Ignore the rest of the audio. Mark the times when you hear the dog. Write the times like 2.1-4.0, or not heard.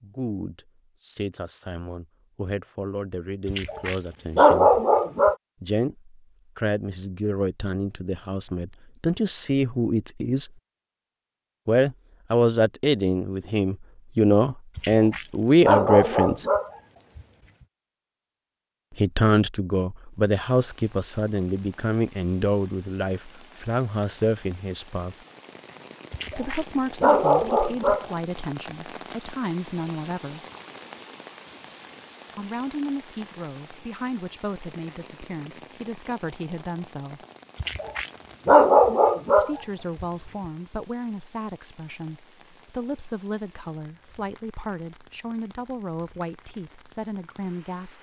3.5-5.3, 14.8-17.2, 26.1-28.1, 37.6-40.0.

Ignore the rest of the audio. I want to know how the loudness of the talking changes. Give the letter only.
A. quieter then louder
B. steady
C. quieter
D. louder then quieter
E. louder
D.